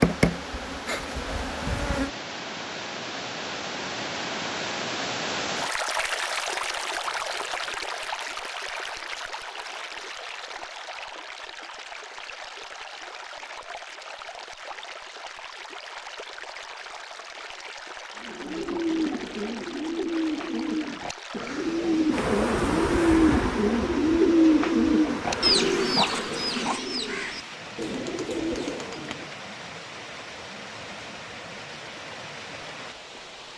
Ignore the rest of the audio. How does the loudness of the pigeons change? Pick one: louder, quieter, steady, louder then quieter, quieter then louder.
louder then quieter.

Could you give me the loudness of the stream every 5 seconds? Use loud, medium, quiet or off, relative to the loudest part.
loud, loud, medium, medium, medium, medium, medium.